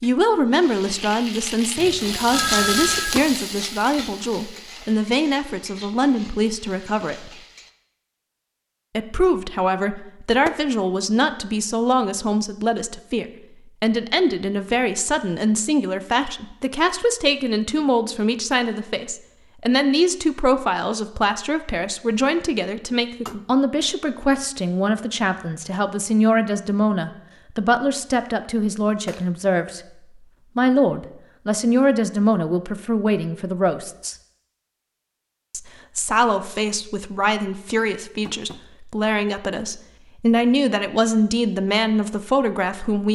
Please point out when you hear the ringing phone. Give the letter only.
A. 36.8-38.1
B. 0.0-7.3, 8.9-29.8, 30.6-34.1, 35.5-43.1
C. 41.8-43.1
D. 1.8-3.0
D.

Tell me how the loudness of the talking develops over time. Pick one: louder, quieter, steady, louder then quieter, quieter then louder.
steady.